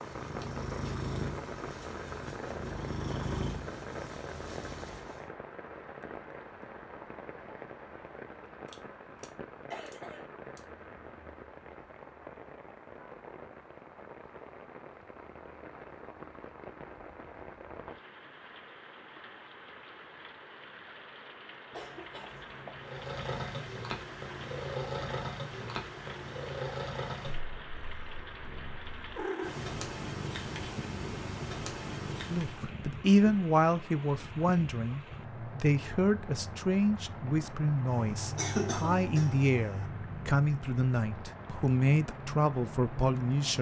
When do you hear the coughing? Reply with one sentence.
You can hear the coughing from 8.7 to 10.7 s, from 21.7 to 22.9 s and from 37.9 to 39.9 s.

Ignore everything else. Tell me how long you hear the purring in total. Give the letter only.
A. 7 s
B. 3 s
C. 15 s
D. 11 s
C.